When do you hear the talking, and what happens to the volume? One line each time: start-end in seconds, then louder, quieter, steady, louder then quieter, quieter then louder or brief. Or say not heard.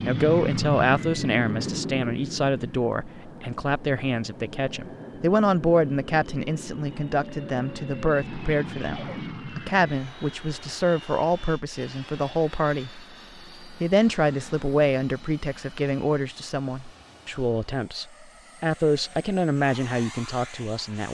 0.1-21.0 steady.